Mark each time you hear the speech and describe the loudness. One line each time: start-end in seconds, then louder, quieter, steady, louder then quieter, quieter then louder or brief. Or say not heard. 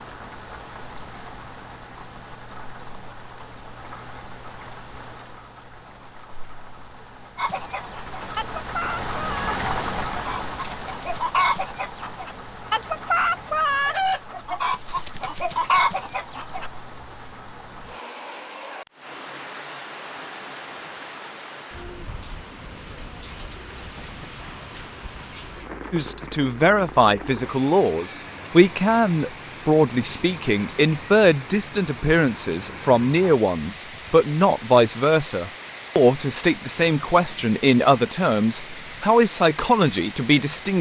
25.9-40.7 steady.